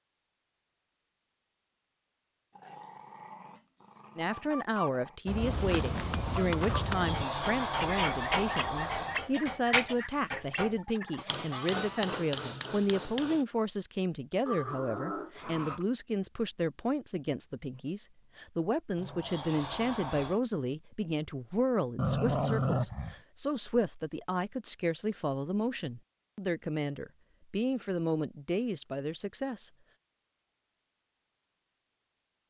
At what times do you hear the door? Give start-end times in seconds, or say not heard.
6.7-9.3, 18.9-20.4.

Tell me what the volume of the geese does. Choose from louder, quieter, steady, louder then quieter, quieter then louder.
quieter.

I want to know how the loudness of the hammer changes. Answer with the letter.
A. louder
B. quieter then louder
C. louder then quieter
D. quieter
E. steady
A.